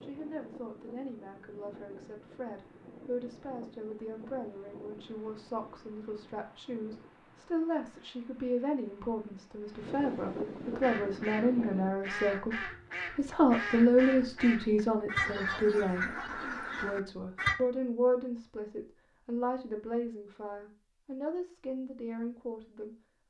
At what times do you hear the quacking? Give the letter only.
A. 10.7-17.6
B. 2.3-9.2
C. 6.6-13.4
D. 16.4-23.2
A.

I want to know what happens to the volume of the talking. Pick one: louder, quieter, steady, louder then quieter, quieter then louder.
louder then quieter.